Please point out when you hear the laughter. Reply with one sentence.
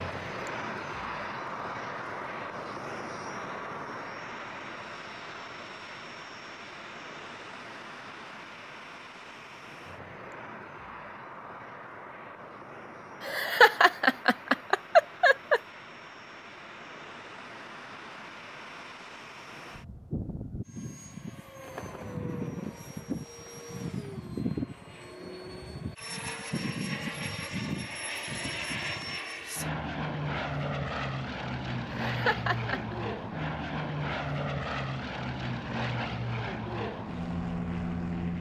The laughter can be heard from 13.2 to 15.6 s and from 31.9 to 33.0 s.